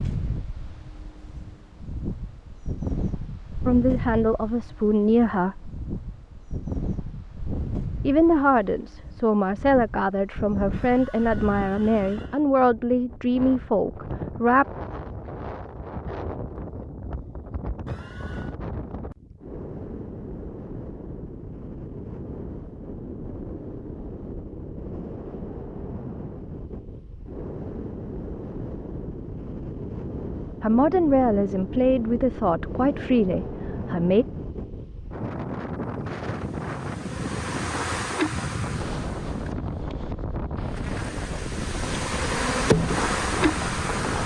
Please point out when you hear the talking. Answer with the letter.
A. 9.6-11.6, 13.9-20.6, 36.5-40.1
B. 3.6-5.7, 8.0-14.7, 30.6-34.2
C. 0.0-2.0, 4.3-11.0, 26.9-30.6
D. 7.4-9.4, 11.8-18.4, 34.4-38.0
B.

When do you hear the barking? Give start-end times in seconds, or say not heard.
not heard.